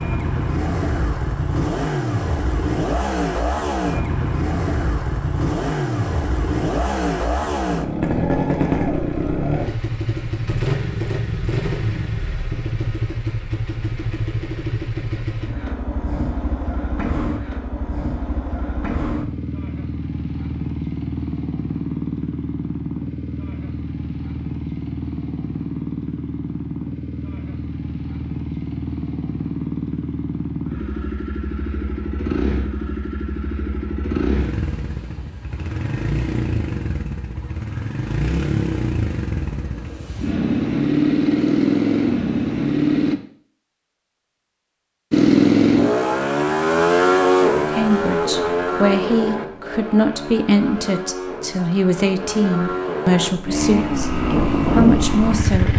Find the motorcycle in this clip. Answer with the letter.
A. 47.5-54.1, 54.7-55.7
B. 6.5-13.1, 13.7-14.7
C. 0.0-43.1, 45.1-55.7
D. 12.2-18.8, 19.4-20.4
C.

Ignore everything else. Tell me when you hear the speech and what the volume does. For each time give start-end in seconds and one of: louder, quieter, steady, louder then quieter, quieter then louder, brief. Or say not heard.
47.5-54.1 steady
54.7-55.7 brief.